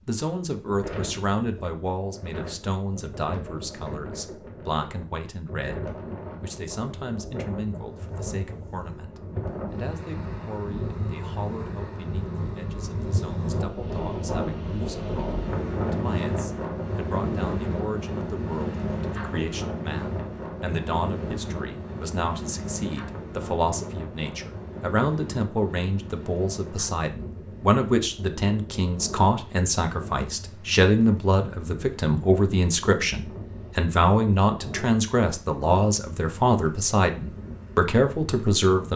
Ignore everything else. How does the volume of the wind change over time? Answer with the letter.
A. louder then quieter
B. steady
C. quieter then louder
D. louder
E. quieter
A.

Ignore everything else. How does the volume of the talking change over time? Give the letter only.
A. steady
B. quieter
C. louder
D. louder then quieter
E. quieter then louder
E.